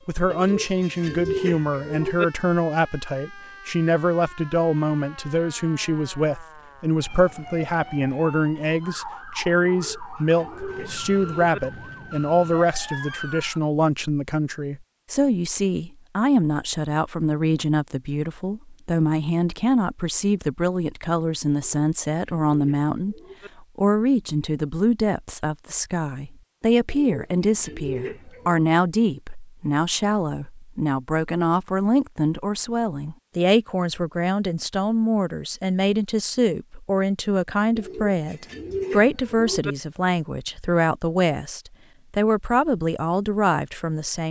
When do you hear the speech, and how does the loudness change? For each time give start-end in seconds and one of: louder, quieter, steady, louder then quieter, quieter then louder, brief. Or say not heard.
0.1-44.2 steady.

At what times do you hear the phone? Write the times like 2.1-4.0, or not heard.
not heard.